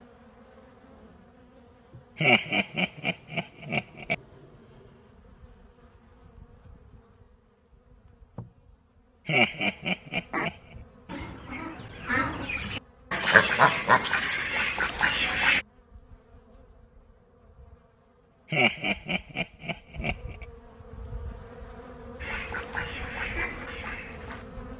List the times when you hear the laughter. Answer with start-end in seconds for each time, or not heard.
2.1-4.2, 9.2-10.6, 18.5-20.4.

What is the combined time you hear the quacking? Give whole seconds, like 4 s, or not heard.
8 s.